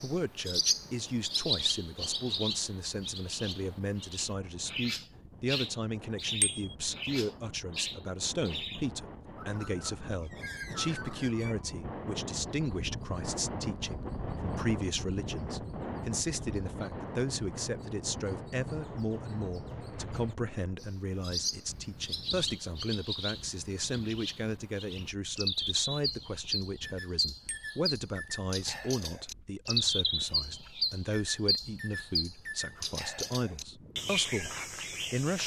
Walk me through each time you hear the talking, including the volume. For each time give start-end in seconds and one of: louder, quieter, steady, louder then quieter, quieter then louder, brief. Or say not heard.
0.0-35.4 steady.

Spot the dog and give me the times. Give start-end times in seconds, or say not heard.
not heard.